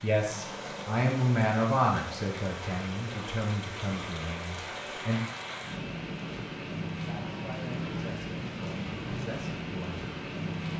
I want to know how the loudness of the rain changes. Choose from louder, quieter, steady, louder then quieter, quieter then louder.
louder.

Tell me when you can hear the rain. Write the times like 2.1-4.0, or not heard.
0.0-10.7.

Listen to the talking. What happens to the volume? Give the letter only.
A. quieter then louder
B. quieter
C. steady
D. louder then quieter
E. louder
B.